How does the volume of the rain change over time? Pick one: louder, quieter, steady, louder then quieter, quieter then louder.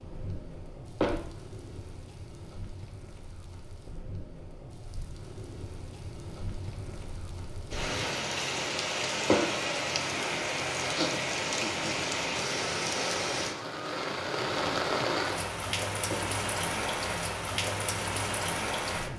louder.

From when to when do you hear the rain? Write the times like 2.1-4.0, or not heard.
0.0-19.1.